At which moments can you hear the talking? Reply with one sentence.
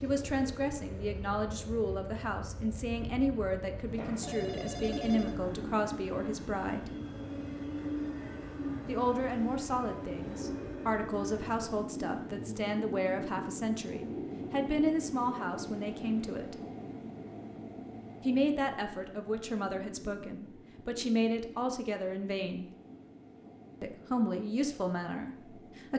You can hear the talking from 0.0 to 6.9 s, from 8.8 to 16.6 s, from 18.2 to 22.6 s and from 23.8 to 25.9 s.